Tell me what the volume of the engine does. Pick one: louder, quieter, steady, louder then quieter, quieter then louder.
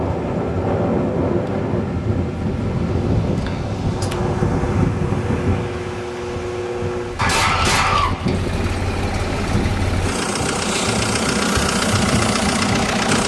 louder.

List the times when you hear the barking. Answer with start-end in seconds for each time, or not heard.
not heard.